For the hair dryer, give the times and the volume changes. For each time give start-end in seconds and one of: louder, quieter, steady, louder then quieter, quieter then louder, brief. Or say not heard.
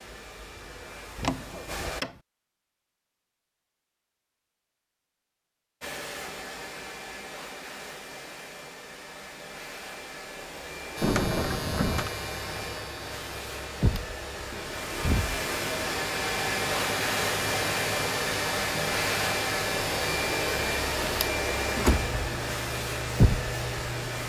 0.0-2.0 brief
5.8-24.2 louder.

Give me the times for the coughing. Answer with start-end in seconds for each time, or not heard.
not heard.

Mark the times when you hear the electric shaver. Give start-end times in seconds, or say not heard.
10.9-24.2.